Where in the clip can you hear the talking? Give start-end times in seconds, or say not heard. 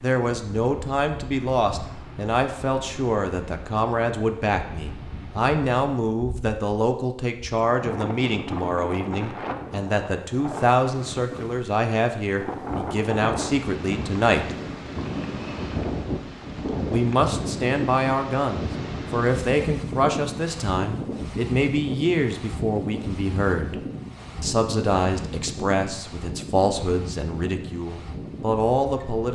0.0-14.5, 16.9-23.8, 24.4-29.3.